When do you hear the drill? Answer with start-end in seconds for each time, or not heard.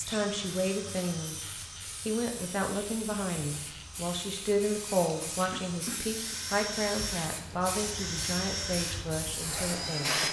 0.0-10.2.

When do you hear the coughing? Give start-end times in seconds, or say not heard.
5.5-6.3.